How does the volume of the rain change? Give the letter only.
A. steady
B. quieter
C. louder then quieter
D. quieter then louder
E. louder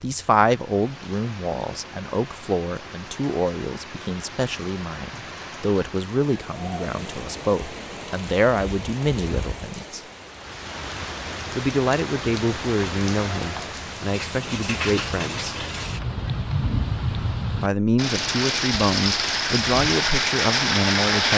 E.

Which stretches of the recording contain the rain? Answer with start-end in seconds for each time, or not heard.
0.0-21.3.